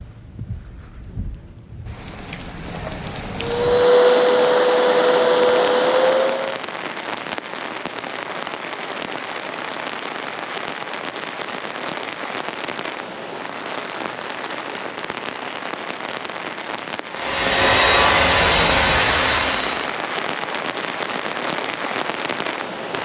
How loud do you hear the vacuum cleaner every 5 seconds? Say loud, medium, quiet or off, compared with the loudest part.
loud, loud, off, loud, off.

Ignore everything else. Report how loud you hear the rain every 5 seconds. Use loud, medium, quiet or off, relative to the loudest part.
medium, loud, loud, loud, loud.